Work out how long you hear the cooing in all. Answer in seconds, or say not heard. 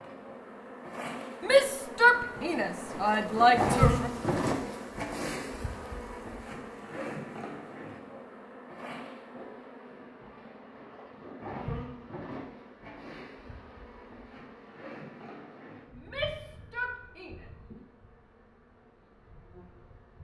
not heard.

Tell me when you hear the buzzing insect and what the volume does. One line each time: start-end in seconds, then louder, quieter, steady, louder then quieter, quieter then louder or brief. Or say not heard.
0.0-20.1 quieter.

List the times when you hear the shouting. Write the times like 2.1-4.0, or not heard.
1.4-4.1, 15.9-17.4.